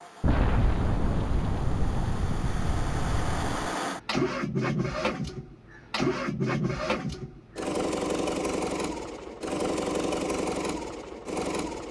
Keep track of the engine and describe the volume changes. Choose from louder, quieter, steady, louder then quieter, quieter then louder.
louder.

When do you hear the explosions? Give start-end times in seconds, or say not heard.
0.2-3.8.